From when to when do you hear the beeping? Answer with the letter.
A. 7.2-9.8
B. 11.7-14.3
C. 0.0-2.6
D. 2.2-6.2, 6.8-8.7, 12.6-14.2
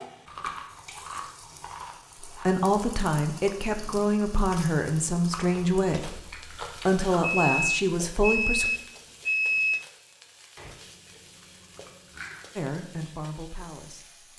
A.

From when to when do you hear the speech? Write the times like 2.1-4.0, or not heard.
2.2-6.2, 6.8-8.7, 12.6-14.2.